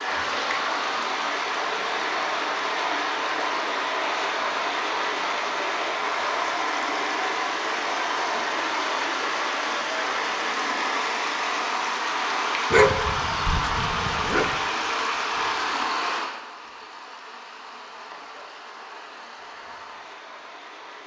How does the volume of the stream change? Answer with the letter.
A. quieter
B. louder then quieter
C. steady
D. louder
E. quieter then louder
A.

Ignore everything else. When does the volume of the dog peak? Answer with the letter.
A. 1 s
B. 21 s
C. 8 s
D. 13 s
D.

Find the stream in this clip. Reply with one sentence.
The stream can be heard from 0.0 to 21.0 s.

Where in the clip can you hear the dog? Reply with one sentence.
You can hear the dog from 12.7 to 14.6 s.